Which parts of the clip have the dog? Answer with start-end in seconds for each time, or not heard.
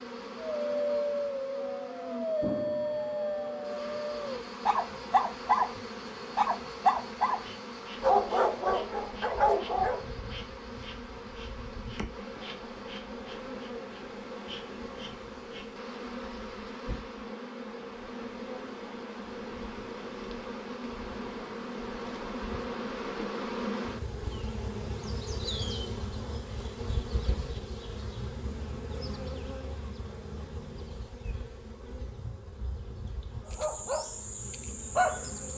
0.6-7.4, 8.0-10.1, 33.5-35.5.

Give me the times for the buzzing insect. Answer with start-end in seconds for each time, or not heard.
0.0-35.5.